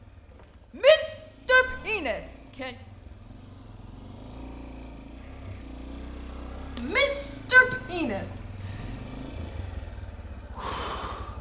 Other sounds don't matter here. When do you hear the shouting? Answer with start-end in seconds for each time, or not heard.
0.8-2.7, 6.8-8.4.